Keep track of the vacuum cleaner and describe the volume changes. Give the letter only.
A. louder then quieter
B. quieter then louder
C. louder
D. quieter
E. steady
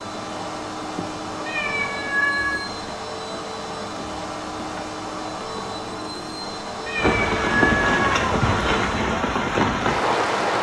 E.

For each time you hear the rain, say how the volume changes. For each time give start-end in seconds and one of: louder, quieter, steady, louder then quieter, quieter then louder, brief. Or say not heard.
0.0-10.5 louder.